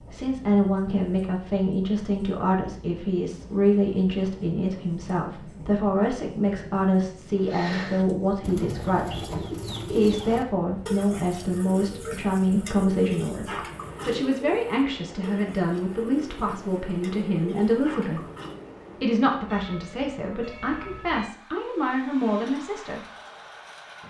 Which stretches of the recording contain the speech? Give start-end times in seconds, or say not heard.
0.1-18.2, 19.0-23.0.